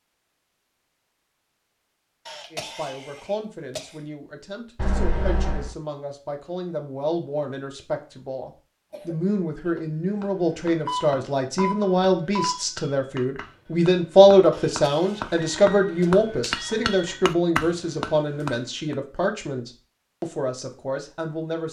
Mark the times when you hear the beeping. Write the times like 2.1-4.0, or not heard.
4.8-5.7, 10.8-12.6, 15.2-17.1.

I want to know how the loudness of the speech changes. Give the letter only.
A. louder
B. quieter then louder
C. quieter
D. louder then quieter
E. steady
D.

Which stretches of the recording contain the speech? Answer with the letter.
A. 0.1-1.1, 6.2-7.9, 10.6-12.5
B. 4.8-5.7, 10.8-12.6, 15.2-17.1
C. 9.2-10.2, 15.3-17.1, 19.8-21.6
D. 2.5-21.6
D.